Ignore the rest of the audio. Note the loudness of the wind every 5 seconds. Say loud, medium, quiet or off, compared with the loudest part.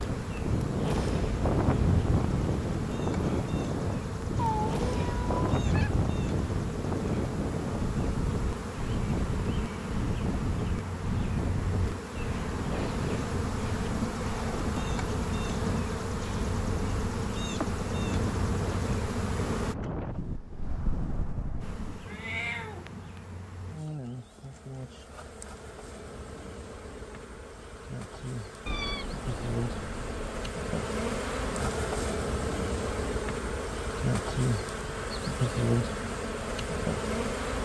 loud, loud, medium, medium, medium, off, off, off.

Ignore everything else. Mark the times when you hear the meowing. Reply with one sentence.
You can hear the meowing from 4.3 to 5.9 s, from 22.1 to 23.2 s and from 28.6 to 30.5 s.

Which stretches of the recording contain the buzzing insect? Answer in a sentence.
You can hear the buzzing insect from 0.0 to 19.8 s and from 21.6 to 37.5 s.